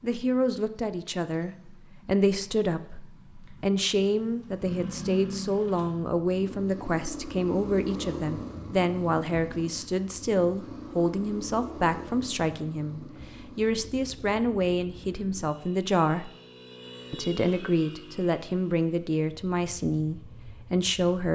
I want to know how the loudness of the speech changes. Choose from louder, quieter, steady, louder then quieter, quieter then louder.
steady.